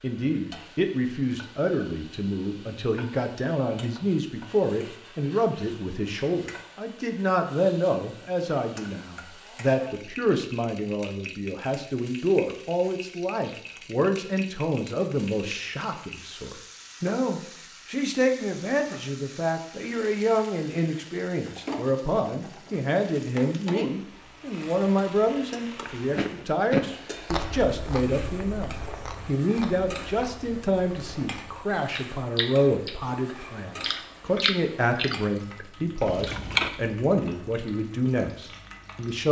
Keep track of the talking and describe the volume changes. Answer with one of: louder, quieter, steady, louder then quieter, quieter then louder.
steady.